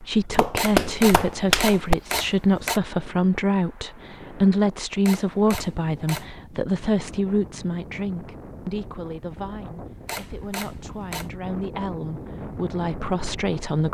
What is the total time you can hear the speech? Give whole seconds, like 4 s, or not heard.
14 s.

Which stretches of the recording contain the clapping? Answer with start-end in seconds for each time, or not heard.
0.1-1.9.